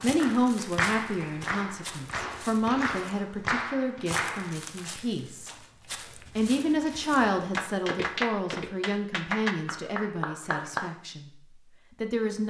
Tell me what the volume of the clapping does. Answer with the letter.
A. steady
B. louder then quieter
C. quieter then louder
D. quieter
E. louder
A.